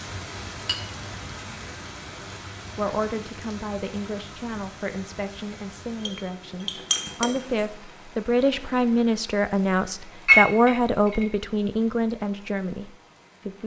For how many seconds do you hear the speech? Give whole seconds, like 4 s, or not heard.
11 s.